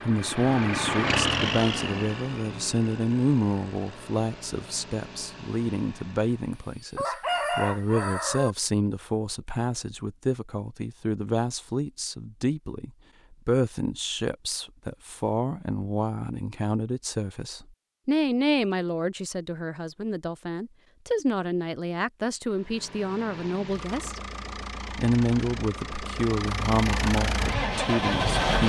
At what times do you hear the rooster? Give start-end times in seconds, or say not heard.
6.5-8.6.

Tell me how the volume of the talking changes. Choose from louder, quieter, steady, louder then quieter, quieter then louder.
steady.